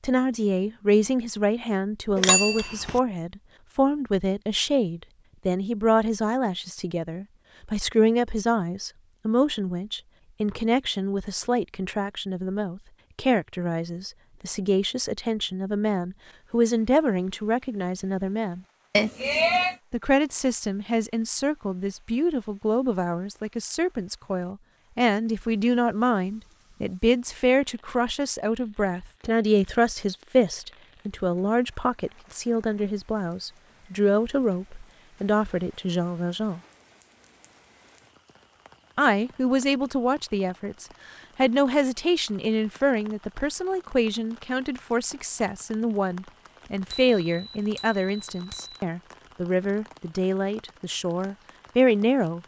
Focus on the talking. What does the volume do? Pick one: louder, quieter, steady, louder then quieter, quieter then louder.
steady.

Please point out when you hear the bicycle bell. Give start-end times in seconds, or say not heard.
2.1-3.0, 18.9-19.8, 46.9-48.8.